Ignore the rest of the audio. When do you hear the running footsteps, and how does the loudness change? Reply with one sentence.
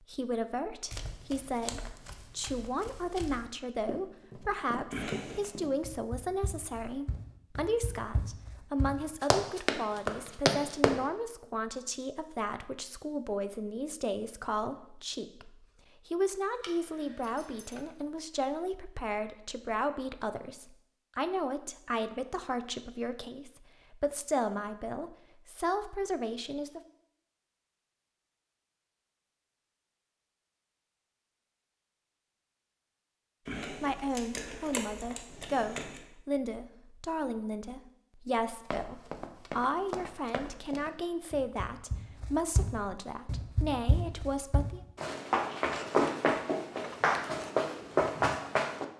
You can hear the running footsteps from 0.9 to 11.0 s, getting louder; and from 38.6 to 48.9 s, getting louder.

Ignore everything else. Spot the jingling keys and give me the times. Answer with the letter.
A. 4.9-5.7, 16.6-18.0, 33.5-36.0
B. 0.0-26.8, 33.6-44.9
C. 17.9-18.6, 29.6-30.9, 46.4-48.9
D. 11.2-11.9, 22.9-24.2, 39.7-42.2
A.